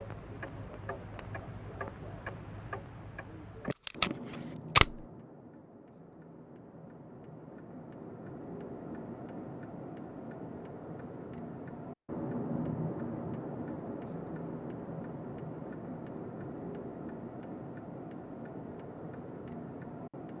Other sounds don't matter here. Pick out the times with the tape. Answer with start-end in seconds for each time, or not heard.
3.7-5.0.